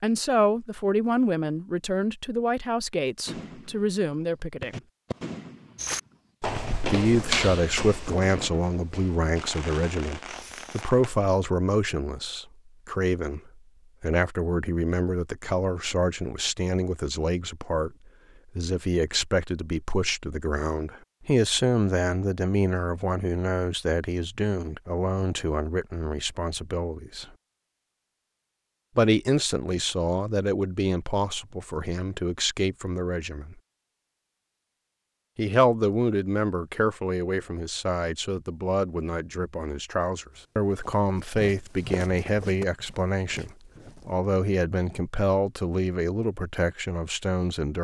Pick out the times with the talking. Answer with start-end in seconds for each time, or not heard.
0.0-4.8, 6.9-17.9, 18.6-27.2, 28.9-33.5, 35.4-47.7.